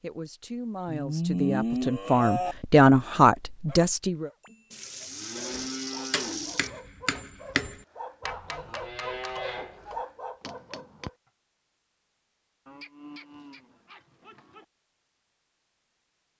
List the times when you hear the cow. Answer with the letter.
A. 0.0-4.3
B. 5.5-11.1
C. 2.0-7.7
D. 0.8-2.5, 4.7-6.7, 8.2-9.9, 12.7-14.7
D.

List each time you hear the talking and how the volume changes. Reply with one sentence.
The talking can be heard from 0.0 to 4.3 s, getting louder.